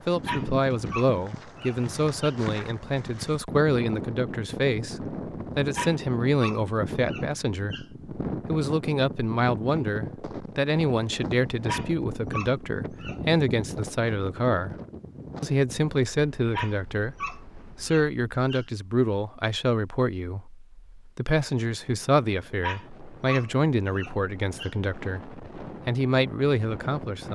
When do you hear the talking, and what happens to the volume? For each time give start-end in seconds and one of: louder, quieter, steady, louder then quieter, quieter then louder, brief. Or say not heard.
0.1-14.8 steady
15.4-27.3 steady.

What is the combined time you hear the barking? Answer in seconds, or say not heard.
10 s.